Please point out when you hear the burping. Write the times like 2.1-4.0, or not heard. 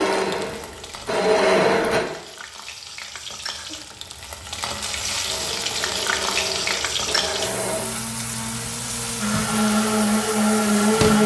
not heard.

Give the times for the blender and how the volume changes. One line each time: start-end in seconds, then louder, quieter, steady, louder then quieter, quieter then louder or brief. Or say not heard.
0.0-2.0 brief
5.2-11.2 louder.